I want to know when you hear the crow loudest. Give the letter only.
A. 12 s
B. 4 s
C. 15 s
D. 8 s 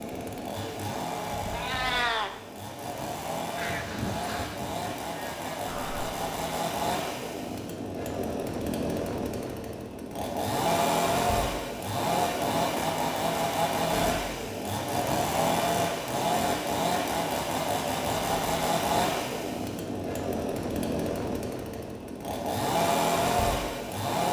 B.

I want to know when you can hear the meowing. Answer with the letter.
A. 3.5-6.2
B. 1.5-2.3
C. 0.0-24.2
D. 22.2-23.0
B.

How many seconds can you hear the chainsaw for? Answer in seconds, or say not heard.
24 s.